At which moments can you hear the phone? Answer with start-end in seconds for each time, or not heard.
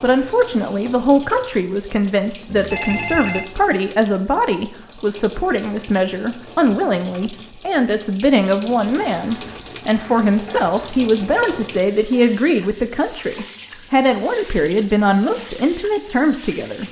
2.5-3.5.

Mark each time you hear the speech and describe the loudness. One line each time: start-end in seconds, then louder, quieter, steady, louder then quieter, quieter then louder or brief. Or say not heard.
0.0-16.8 steady.